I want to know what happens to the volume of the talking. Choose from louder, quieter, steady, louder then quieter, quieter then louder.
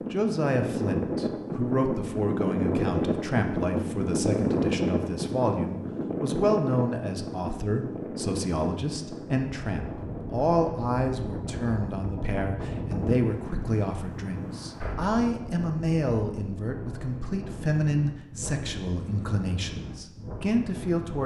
steady.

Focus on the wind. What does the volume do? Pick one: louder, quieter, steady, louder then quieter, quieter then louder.
quieter.